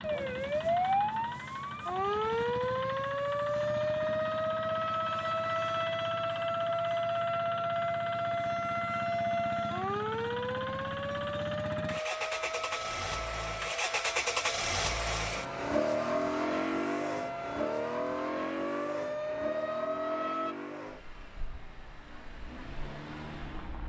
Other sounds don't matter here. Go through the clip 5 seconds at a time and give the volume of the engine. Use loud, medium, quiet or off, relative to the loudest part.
medium, medium, loud, loud, medium.